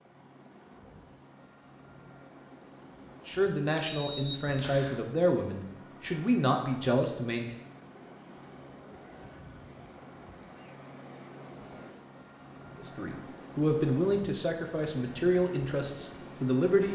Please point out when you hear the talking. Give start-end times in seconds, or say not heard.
3.2-7.5, 12.8-16.9.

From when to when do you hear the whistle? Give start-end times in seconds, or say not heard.
3.9-5.0.